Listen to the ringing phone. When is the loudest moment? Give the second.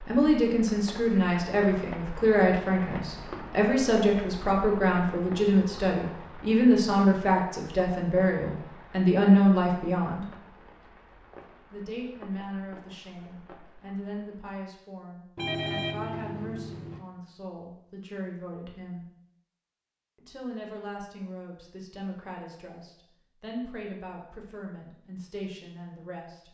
16 s.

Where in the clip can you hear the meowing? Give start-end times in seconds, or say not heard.
not heard.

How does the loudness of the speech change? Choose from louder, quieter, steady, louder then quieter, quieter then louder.
quieter.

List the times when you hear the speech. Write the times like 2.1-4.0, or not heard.
0.1-10.3, 11.7-19.1, 20.1-26.4.